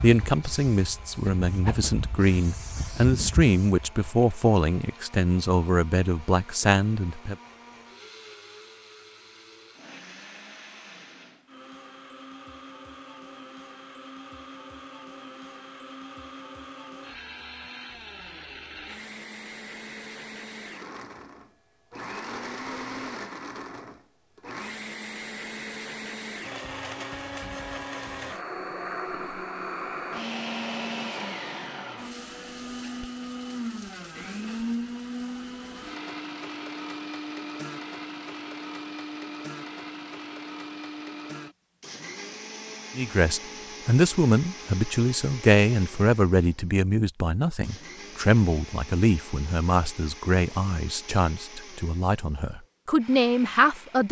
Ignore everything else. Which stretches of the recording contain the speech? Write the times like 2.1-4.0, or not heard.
0.0-7.3, 43.0-54.0.